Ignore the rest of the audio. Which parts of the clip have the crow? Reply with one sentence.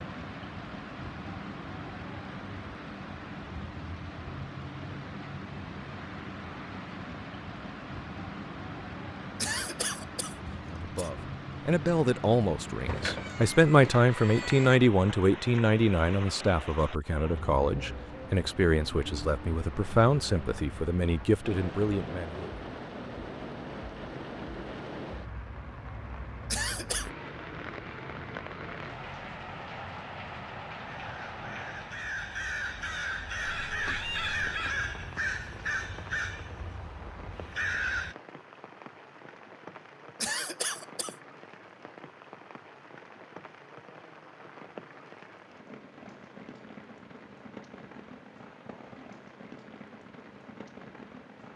You can hear the crow from 30.9 to 38.1 s.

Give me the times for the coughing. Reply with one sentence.
The coughing can be heard from 9.3 to 11.1 s, from 26.5 to 27.1 s and from 40.2 to 41.1 s.